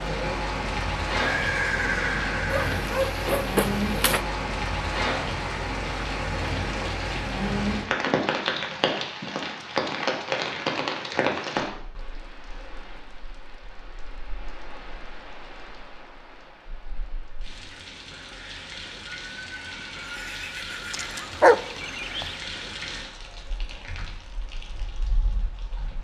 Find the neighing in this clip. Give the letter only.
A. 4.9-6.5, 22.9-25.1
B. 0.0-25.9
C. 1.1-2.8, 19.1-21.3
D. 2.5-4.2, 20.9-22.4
C.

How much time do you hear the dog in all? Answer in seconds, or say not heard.
3 s.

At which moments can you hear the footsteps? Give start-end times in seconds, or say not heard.
not heard.